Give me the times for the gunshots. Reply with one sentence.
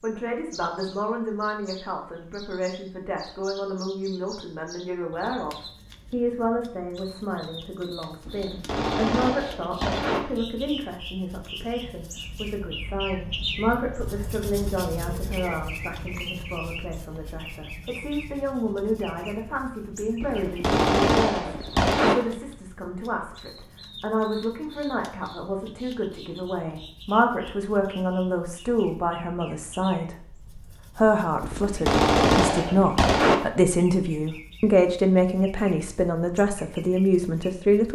The gunshots can be heard from 8.2 to 10.2 s, from 20.2 to 22.1 s and from 31.4 to 33.4 s.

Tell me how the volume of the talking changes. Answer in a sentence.
The loudness of the talking goes up.